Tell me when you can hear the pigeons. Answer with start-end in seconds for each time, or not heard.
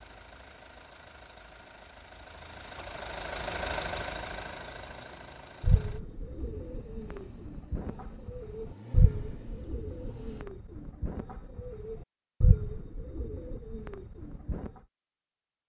5.6-14.7.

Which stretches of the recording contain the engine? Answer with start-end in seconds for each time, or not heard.
0.0-10.4.